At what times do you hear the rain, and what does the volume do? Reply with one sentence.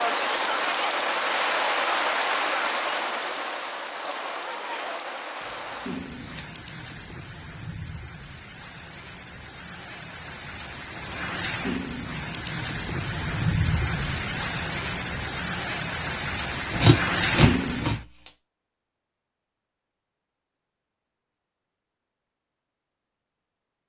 You can hear the rain from 0.0 to 18.1 s, getting quieter then louder.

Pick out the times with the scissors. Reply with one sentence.
The scissors can be heard from 5.4 to 6.4 s and from 16.7 to 18.3 s.